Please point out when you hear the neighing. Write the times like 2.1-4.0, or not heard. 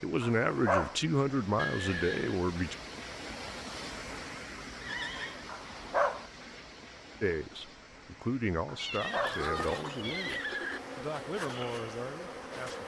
1.6-2.4, 4.8-5.5, 8.8-10.8.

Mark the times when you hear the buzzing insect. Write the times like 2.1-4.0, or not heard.
9.1-12.8.